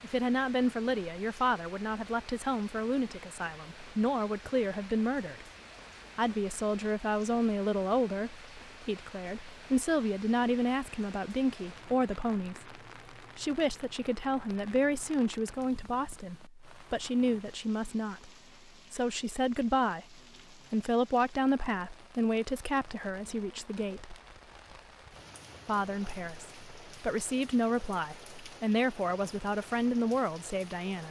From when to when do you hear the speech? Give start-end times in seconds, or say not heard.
0.0-5.5, 6.2-18.3, 18.9-24.1, 25.6-31.0.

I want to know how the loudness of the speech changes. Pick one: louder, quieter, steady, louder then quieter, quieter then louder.
steady.